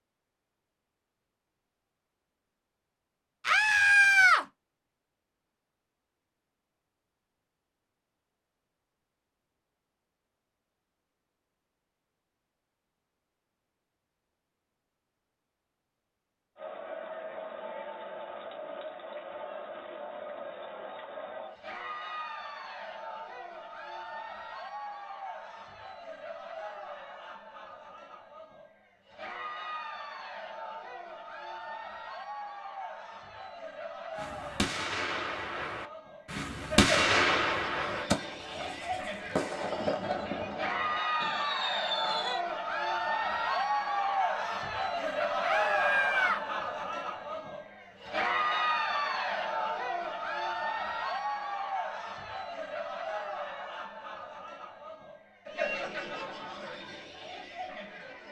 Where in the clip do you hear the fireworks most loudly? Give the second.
37 s.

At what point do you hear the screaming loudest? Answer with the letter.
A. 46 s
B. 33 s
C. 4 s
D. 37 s
C.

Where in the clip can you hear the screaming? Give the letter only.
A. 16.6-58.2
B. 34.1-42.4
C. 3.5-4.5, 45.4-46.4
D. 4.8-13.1
C.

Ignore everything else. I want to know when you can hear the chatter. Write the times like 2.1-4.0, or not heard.
16.6-58.2.